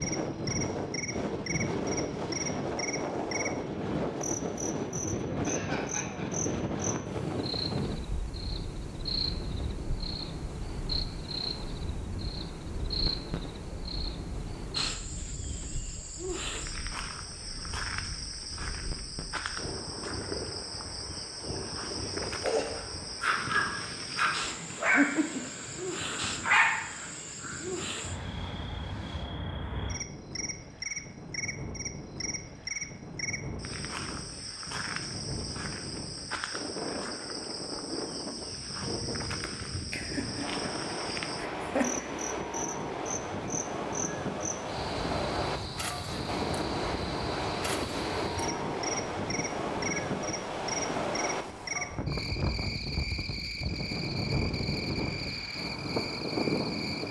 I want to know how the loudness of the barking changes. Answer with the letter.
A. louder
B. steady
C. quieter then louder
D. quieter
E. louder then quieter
C.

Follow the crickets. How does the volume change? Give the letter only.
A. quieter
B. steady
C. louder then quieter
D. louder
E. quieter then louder
B.